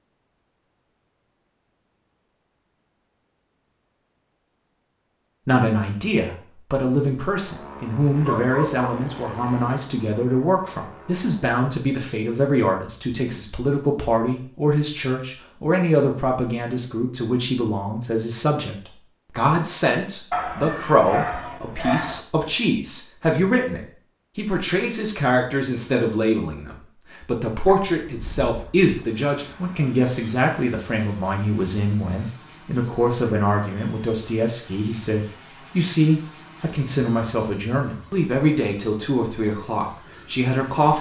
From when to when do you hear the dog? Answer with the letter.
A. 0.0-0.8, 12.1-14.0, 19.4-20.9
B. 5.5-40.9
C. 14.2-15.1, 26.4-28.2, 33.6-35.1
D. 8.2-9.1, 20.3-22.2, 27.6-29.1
D.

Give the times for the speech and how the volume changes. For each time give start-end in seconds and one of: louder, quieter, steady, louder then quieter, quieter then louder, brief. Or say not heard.
5.5-40.9 steady.